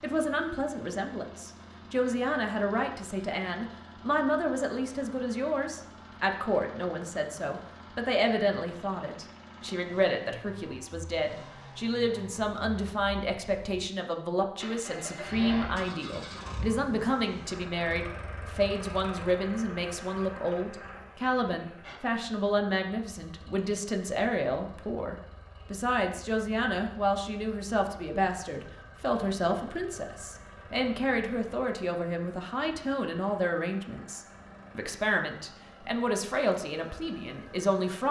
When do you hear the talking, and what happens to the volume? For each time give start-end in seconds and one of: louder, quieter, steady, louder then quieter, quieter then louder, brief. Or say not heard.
0.0-38.0 steady.